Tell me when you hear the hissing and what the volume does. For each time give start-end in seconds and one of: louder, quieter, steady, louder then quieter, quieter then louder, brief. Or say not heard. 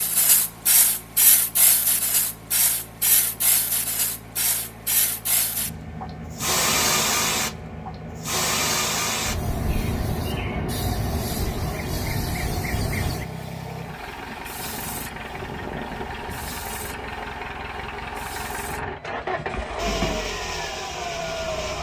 0.0-21.7 quieter.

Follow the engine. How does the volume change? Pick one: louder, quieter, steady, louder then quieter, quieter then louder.
louder.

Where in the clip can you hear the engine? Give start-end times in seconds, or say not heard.
0.0-21.7.